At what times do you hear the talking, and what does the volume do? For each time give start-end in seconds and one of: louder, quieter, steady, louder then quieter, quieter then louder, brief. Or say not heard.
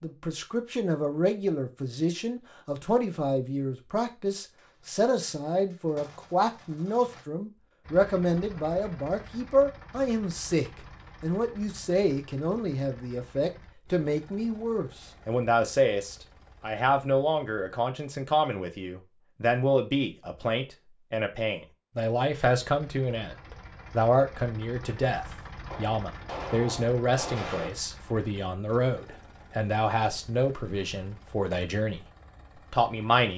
0.0-32.0 steady
32.7-33.3 brief.